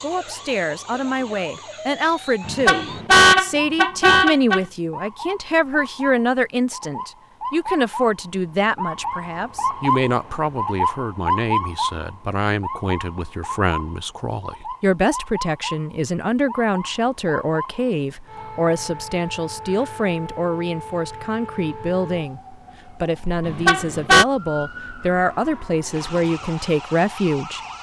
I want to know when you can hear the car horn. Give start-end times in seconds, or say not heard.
2.5-4.6, 23.4-24.2.